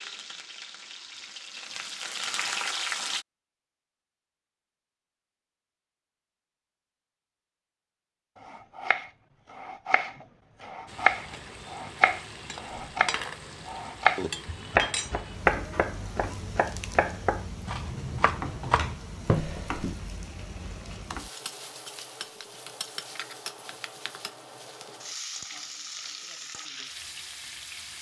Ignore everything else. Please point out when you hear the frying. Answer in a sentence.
The frying can be heard from 0.0 to 3.2 s and from 10.8 to 27.9 s.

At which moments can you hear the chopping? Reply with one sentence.
You can hear the chopping from 8.4 to 19.9 s.